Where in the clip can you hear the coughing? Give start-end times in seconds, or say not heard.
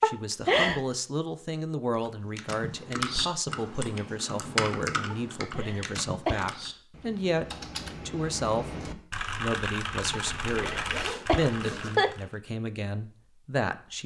0.0-0.8, 5.1-6.5, 10.1-12.2.